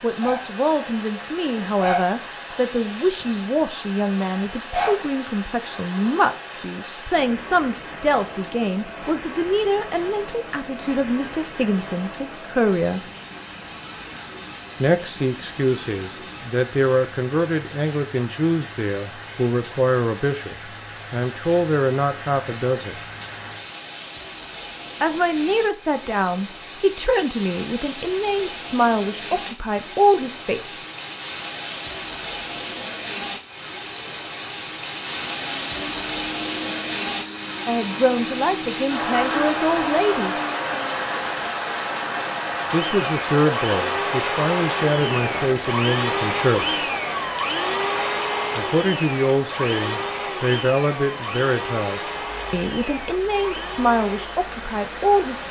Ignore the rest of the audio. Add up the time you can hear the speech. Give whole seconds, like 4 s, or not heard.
41 s.